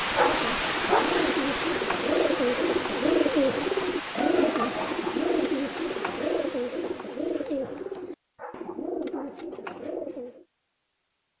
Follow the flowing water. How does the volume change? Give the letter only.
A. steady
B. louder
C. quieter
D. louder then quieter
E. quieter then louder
C.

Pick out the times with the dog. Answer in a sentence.
You can hear the dog from 0.1 to 1.2 s and from 8.3 to 9.5 s.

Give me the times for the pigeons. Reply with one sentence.
The pigeons can be heard from 0.1 to 10.4 s.